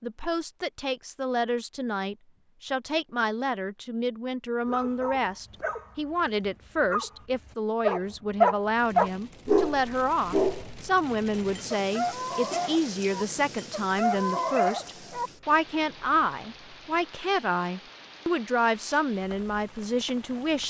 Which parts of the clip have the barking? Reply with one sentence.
The barking can be heard from 4.7 to 15.3 s.